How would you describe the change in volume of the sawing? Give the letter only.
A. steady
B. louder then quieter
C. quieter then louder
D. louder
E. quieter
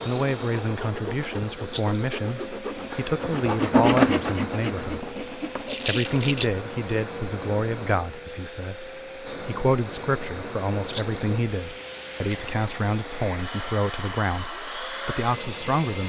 B.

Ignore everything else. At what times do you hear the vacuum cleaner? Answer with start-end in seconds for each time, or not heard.
0.0-16.0.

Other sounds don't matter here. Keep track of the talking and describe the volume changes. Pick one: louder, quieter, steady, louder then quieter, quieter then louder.
steady.